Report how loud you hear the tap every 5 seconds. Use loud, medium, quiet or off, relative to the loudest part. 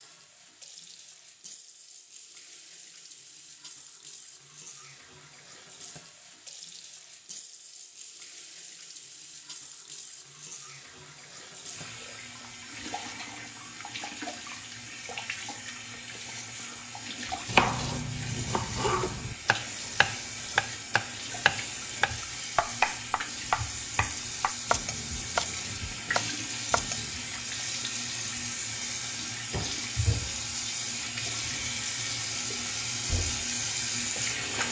quiet, quiet, medium, medium, medium, loud, loud.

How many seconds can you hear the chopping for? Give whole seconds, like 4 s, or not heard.
10 s.